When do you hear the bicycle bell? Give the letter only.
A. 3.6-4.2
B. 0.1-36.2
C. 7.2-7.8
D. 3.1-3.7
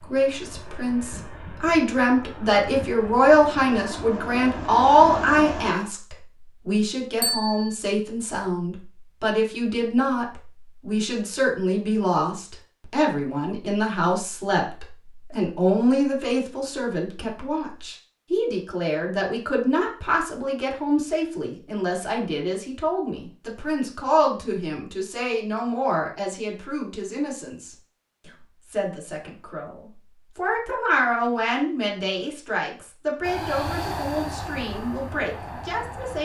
C.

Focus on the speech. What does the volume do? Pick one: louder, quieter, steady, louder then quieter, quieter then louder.
quieter.